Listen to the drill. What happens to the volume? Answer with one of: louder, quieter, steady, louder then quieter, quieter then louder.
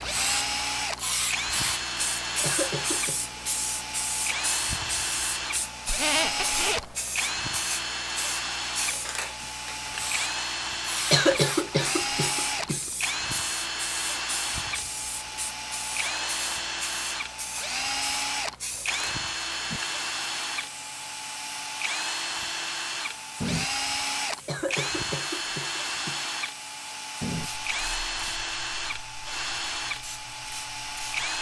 steady.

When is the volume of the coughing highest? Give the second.
11 s.